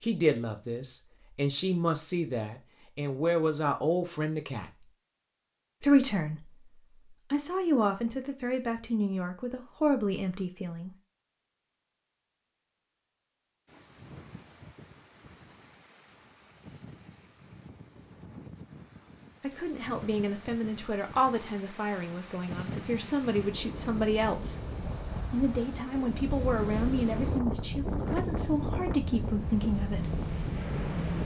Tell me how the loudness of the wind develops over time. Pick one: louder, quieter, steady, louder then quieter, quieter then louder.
louder.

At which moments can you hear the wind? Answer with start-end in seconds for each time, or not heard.
13.7-31.1.